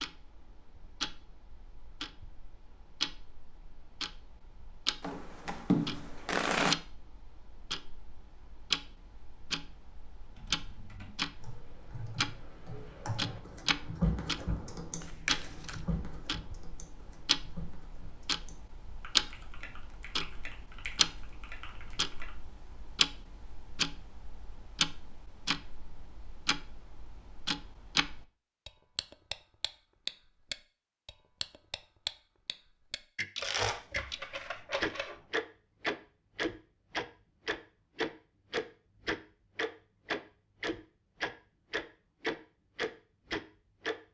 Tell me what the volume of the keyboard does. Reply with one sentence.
The loudness of the keyboard goes up, then down.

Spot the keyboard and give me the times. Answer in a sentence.
You can hear the keyboard from 10.3 to 22.3 s.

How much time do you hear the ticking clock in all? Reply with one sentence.
The ticking clock can be heard for 43 seconds in total.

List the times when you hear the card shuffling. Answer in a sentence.
The card shuffling can be heard from 5.0 to 6.8 s, from 15.0 to 15.8 s and from 33.4 to 35.2 s.